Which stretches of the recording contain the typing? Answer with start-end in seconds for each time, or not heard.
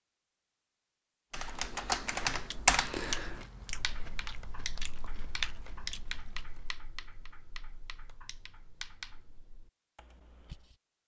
1.3-10.8.